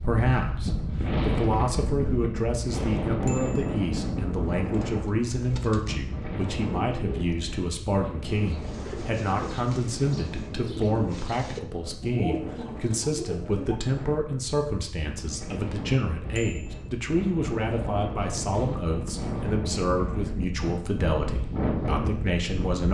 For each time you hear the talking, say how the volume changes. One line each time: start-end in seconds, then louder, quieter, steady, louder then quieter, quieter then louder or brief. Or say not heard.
0.0-22.8 steady.